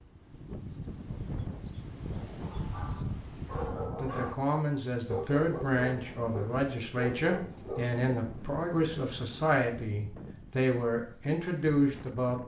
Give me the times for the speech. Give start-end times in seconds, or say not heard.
4.0-12.4.